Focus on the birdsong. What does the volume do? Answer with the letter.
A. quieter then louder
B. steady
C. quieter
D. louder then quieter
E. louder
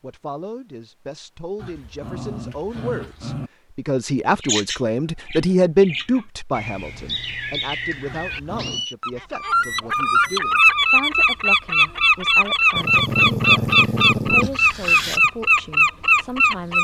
E.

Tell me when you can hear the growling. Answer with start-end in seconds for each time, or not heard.
1.6-3.5, 8.1-8.8, 12.8-15.3.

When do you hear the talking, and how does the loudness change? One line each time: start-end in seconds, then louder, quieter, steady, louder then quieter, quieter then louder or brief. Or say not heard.
0.0-16.7 louder then quieter.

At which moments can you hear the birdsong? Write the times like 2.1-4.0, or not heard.
4.3-16.7.